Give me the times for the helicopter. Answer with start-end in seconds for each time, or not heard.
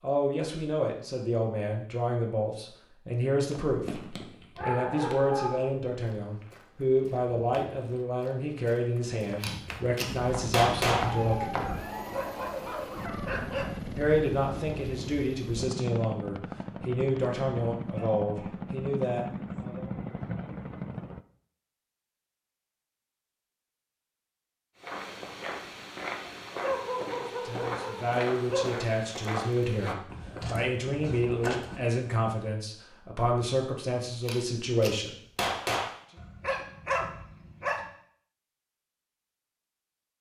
10.1-21.2.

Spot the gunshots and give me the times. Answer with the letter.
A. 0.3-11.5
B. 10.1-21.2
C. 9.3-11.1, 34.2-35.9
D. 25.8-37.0
C.